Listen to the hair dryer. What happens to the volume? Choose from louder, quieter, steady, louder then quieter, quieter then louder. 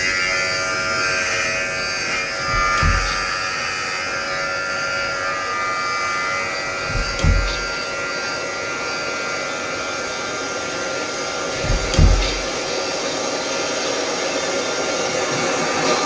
louder.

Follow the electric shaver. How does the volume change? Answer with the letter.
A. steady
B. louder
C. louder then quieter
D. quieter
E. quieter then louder
D.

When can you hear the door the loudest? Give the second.
12 s.